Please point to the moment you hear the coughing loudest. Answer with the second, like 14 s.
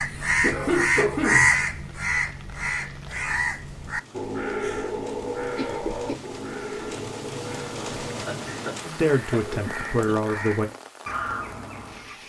1 s.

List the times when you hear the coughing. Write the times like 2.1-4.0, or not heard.
0.1-1.6, 5.5-6.2, 8.2-10.2.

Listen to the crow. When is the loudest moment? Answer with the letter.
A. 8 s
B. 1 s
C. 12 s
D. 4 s
B.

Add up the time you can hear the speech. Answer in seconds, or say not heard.
2 s.